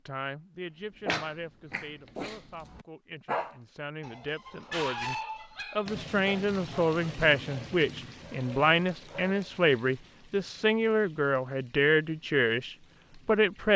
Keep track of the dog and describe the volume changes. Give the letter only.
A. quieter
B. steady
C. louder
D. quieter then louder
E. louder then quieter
E.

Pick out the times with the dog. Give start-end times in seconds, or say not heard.
1.1-9.4.